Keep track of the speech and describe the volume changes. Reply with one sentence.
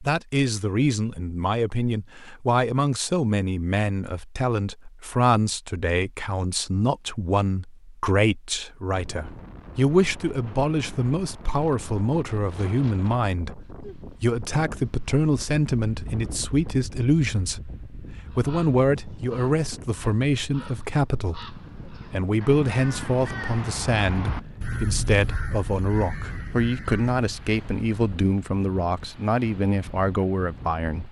The volume of the speech stays about the same.